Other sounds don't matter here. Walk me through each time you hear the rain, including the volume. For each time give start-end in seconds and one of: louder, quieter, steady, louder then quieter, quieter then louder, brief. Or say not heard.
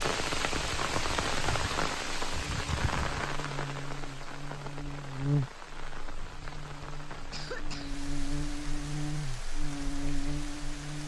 0.0-11.0 quieter.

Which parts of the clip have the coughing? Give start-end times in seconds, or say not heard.
6.8-8.1.